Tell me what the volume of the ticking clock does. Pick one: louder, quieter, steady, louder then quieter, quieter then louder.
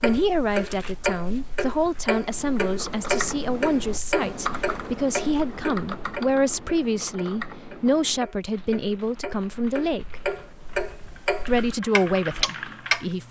quieter then louder.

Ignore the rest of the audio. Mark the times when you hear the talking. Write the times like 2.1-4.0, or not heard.
0.0-10.2, 11.4-13.2.